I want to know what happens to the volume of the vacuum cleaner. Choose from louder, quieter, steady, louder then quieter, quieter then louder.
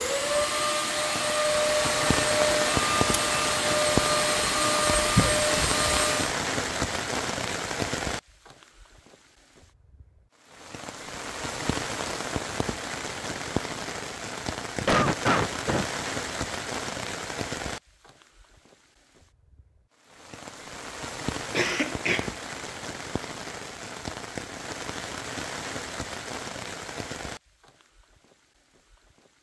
steady.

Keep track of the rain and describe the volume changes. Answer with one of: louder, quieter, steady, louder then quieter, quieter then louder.
quieter.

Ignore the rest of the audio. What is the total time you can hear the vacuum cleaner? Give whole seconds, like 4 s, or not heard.
6 s.